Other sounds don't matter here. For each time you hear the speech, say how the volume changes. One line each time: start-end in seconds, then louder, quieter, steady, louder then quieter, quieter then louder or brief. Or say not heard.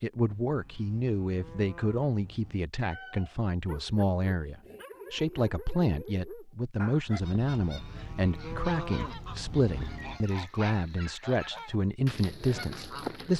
0.0-13.3 steady.